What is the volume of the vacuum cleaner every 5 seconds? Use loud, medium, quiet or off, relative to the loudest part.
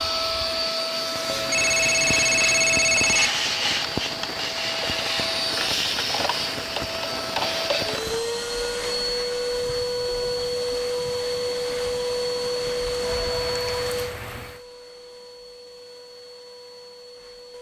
loud, loud, loud, quiet.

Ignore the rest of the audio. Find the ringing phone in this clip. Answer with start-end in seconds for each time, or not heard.
1.2-3.3, 13.1-13.9.